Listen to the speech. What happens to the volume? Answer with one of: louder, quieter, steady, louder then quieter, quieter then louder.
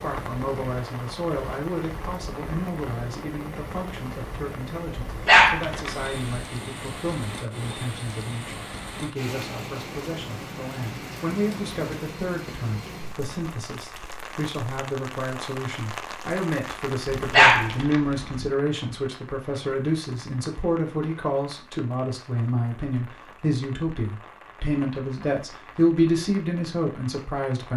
louder.